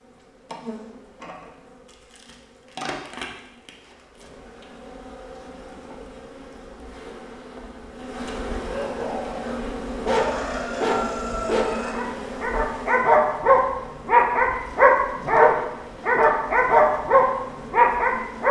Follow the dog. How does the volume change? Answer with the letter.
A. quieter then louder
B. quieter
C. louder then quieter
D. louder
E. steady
D.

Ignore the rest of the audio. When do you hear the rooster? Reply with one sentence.
You can hear the rooster from 10.1 to 12.1 s.